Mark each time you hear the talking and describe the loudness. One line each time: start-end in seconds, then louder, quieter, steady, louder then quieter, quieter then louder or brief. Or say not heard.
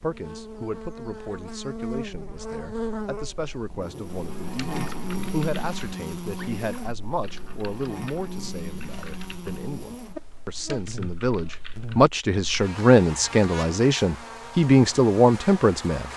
0.0-16.1 louder.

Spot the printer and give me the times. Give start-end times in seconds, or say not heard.
not heard.